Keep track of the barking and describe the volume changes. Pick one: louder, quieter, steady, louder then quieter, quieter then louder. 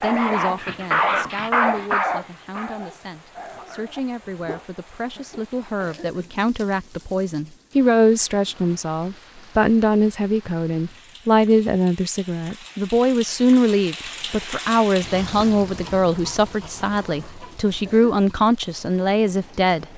quieter.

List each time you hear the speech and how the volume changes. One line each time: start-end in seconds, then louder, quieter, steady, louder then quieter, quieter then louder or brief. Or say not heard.
0.0-19.9 louder.